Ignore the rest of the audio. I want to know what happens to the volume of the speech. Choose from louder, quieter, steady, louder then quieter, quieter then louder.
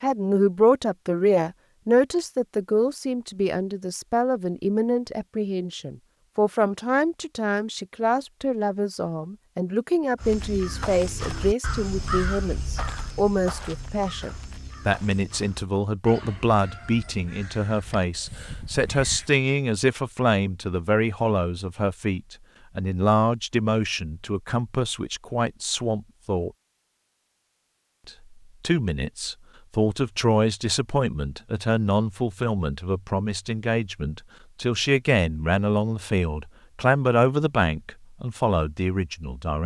steady.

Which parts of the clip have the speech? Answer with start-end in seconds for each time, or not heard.
0.0-26.5, 28.1-39.6.